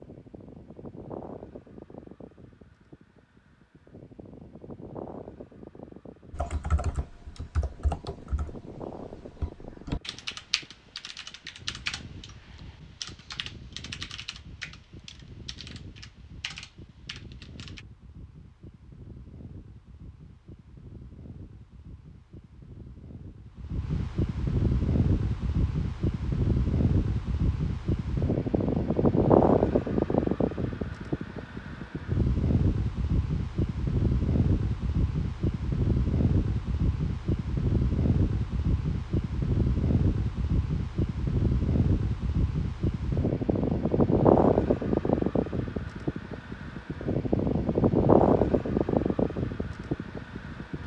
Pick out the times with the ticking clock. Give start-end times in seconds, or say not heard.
not heard.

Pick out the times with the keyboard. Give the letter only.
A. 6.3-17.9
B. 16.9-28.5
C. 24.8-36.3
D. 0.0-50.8
A.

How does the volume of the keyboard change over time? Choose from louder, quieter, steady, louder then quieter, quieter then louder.
quieter.